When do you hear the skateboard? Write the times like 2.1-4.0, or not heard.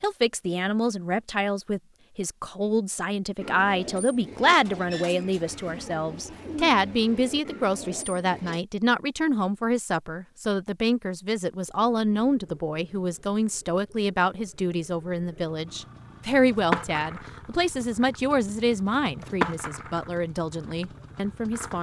16.5-21.7.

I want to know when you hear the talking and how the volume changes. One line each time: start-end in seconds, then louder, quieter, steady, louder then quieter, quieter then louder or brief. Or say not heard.
0.0-21.7 steady.